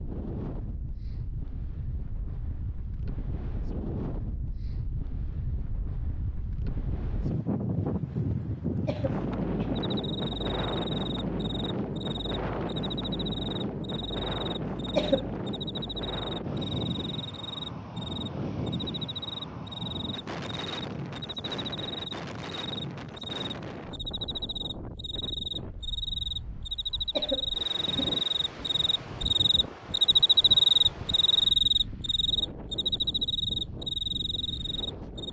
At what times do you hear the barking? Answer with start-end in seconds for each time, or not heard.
not heard.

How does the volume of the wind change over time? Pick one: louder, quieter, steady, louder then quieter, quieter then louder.
louder then quieter.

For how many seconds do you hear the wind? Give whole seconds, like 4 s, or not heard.
35 s.